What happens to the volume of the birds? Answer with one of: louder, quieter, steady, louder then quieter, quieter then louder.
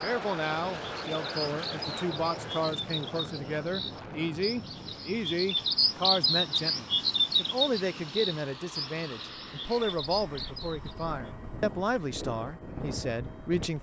louder then quieter.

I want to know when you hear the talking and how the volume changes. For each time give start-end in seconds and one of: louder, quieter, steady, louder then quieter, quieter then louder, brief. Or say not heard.
0.0-13.7 steady.